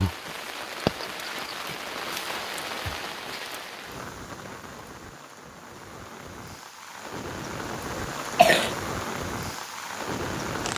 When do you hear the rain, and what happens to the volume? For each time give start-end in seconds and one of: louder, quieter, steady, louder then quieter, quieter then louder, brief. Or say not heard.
0.0-10.7 quieter then louder.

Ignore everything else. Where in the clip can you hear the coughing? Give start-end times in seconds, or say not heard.
7.9-8.8.